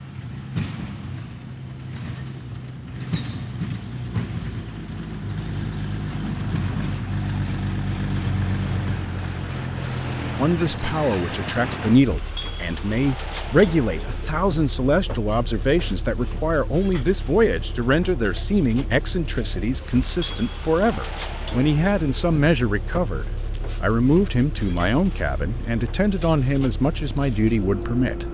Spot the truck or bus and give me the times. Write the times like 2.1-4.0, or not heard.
0.0-28.2.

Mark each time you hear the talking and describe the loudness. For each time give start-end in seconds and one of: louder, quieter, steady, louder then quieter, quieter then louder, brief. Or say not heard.
10.3-28.2 steady.